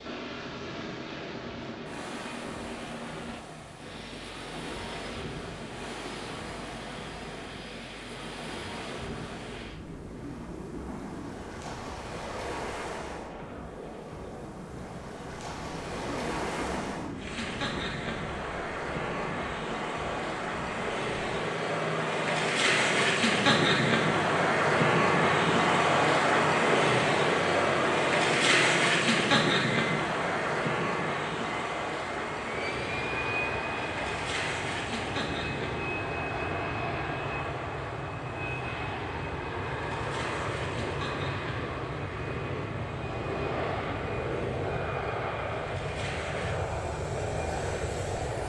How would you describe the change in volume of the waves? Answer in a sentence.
The loudness of the waves goes up, then down.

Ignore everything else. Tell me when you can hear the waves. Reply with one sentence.
The waves can be heard from 0.0 to 48.4 s.